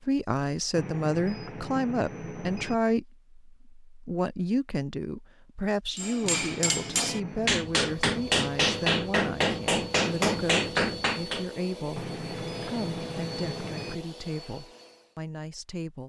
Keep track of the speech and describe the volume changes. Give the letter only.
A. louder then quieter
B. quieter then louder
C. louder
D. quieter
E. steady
D.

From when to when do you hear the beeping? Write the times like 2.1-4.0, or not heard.
0.8-2.8, 6.2-7.7, 11.9-13.9.